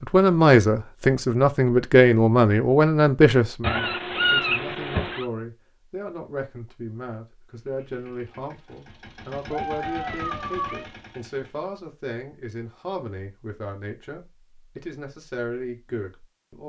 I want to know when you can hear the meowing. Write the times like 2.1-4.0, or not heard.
3.6-5.2, 9.5-10.8.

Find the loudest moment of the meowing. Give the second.
4 s.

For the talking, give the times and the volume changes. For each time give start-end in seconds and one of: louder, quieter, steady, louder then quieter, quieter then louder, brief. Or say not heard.
0.0-16.6 quieter.